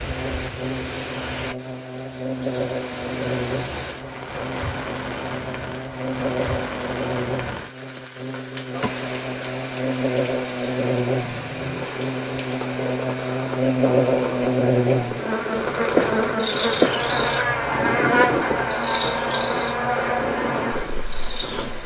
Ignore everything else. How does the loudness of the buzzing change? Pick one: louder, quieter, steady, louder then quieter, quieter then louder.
louder.